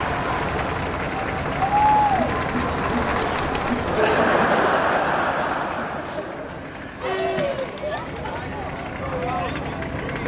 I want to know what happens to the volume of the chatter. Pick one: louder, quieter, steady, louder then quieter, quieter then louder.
quieter.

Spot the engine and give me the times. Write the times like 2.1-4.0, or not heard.
0.0-10.2.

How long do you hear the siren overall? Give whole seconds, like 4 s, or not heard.
not heard.